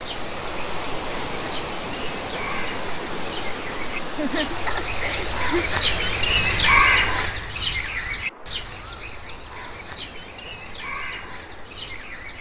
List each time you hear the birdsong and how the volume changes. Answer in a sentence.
You can hear the birdsong from 0.0 to 12.3 s, getting louder then quieter.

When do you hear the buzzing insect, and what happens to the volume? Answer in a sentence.
The buzzing insect can't be heard in this clip.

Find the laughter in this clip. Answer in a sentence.
The laughter can be heard from 4.1 to 5.7 s.